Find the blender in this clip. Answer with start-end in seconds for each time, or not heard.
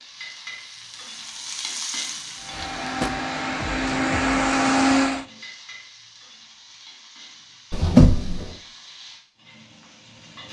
2.4-5.2.